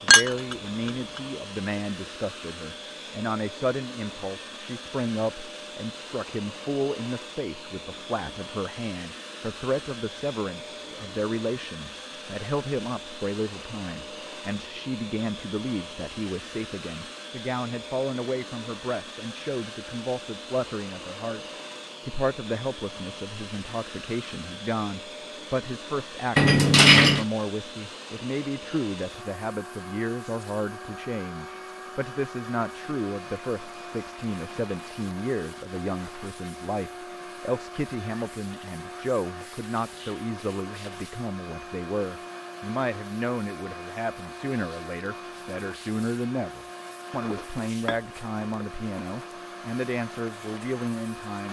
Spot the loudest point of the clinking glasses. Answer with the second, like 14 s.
27 s.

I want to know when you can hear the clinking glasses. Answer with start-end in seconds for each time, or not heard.
0.1-1.2, 26.4-27.2, 47.2-48.0.